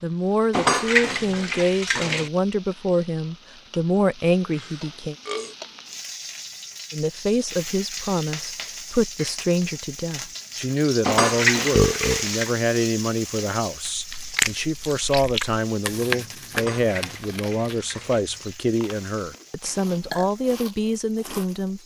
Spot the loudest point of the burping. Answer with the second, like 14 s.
12 s.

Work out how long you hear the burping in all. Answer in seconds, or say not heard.
2 s.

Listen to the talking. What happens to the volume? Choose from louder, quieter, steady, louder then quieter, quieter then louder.
steady.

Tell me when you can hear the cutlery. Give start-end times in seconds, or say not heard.
0.5-2.3, 11.0-12.5, 16.5-18.2.